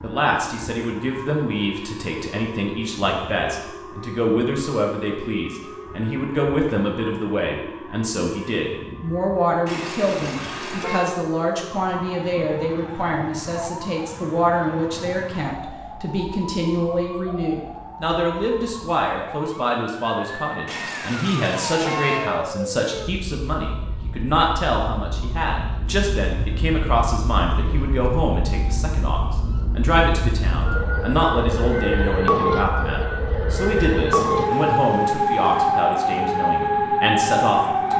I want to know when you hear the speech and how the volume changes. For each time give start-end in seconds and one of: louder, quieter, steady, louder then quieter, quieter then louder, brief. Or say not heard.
0.0-37.9 steady.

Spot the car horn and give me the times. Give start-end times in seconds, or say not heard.
9.7-11.1, 20.6-22.4, 34.5-35.7.